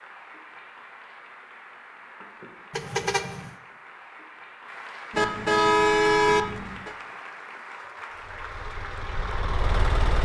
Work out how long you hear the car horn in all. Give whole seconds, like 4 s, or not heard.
3 s.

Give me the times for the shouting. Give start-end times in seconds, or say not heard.
not heard.